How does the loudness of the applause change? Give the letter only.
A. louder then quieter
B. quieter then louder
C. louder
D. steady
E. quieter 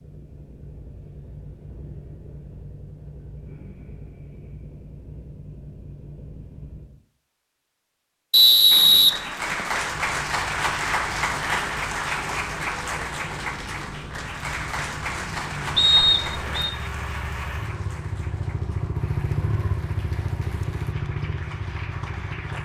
E.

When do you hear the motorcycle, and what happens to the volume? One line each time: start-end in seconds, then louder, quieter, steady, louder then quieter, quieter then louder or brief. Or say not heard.
0.0-7.0 steady
9.7-22.5 louder.